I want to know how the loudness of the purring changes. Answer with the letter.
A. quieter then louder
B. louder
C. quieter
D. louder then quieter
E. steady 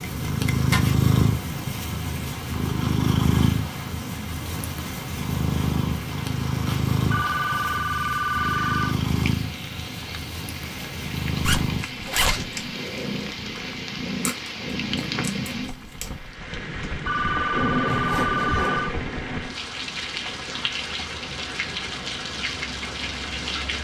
C.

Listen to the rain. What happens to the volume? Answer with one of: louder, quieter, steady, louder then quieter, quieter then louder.
louder.